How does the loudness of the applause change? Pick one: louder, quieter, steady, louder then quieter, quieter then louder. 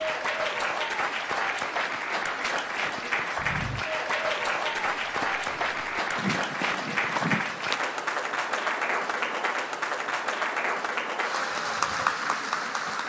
steady.